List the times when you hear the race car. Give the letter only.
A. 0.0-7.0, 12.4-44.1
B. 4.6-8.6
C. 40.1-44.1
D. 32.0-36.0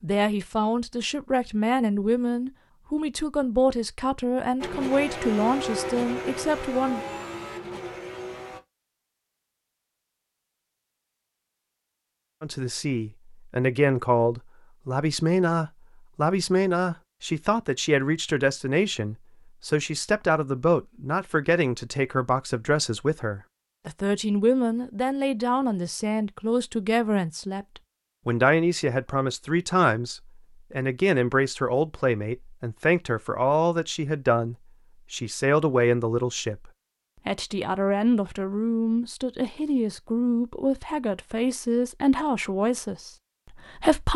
B.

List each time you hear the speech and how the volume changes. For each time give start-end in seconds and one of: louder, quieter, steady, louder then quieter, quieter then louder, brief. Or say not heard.
0.0-7.0 steady
12.4-44.1 steady.